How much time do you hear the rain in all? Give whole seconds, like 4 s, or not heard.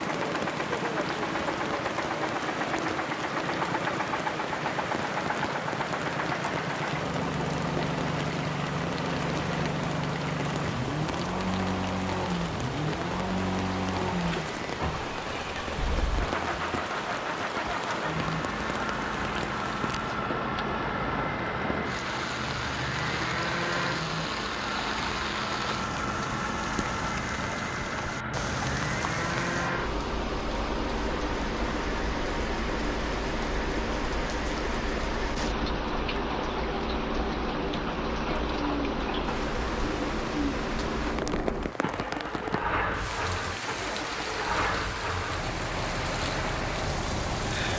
48 s.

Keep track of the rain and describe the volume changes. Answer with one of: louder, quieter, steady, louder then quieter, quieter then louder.
steady.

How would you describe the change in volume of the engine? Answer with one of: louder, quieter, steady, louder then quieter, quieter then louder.
steady.